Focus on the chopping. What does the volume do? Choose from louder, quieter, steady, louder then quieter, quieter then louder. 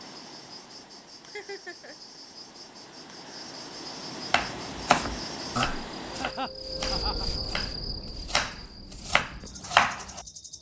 quieter then louder.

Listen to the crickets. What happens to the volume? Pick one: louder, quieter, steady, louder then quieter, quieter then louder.
louder then quieter.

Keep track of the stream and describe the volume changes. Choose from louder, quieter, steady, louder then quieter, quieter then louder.
louder.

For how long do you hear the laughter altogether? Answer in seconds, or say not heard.
2 s.